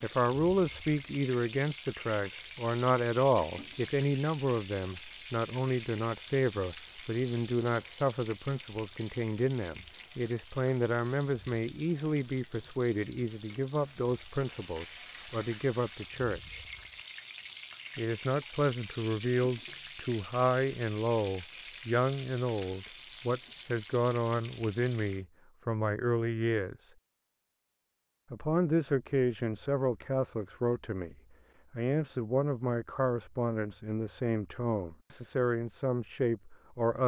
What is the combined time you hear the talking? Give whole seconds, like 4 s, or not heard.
34 s.